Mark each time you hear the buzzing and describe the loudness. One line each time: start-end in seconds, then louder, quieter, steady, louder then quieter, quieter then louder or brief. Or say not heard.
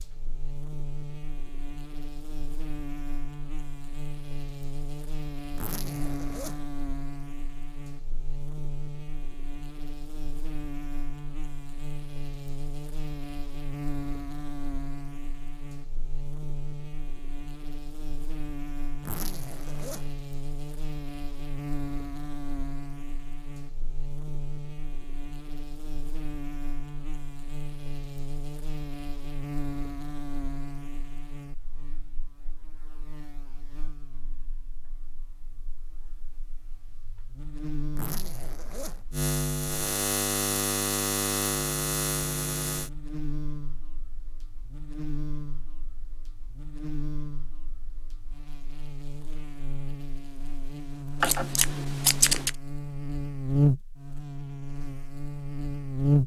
0.0-56.2 louder.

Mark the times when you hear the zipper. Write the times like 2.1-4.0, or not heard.
5.5-6.7, 19.0-20.2, 37.9-39.1.